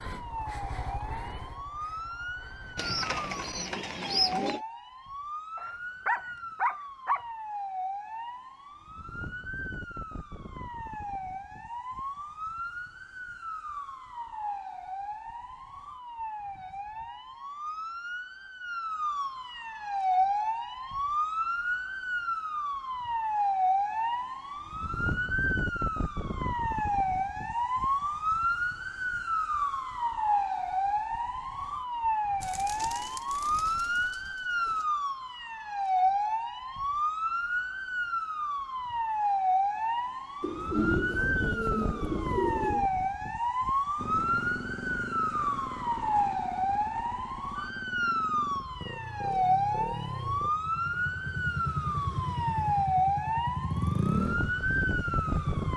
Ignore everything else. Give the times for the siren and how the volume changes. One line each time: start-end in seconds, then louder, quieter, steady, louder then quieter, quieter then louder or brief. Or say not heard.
0.0-55.7 louder.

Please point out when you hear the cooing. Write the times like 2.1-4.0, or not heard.
2.8-4.6, 32.4-34.9, 40.4-42.9.